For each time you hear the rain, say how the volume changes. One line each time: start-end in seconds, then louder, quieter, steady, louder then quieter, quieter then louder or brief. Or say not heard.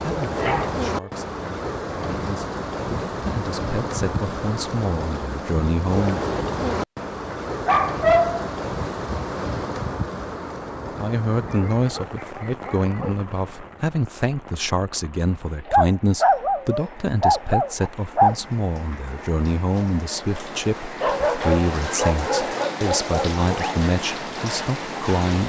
0.0-25.4 quieter then louder.